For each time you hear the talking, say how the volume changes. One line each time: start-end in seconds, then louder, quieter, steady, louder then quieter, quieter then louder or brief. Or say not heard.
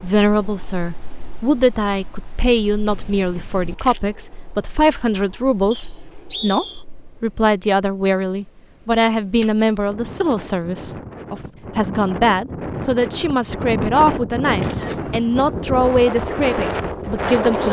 0.0-17.6 steady.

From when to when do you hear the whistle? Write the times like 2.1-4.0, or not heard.
5.7-6.8.